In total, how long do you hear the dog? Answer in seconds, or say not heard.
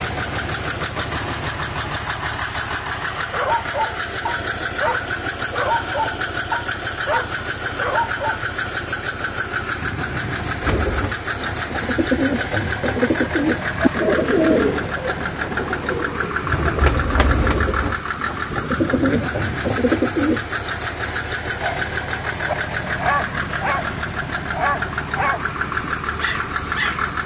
11 s.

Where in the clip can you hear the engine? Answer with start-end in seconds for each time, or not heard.
0.0-27.2.